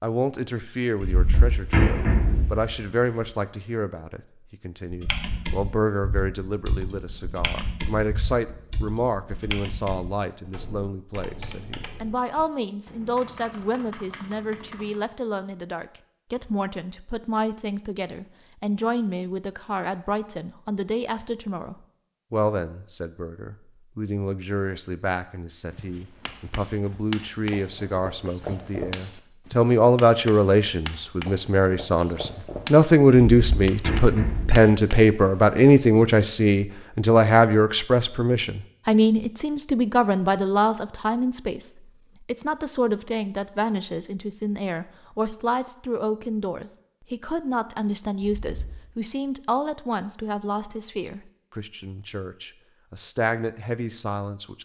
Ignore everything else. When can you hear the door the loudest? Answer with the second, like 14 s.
2 s.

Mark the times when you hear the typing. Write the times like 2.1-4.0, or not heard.
4.9-15.1.